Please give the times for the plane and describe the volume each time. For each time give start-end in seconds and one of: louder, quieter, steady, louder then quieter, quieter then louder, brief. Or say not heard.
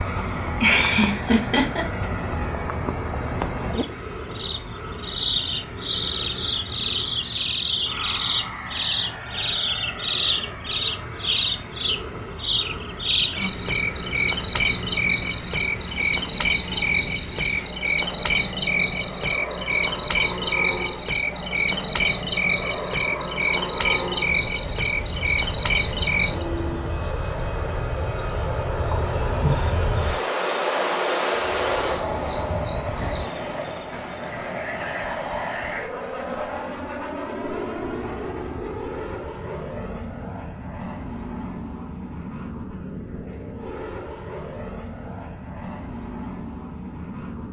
0.0-47.4 louder then quieter.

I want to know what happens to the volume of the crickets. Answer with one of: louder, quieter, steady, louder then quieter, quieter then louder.
steady.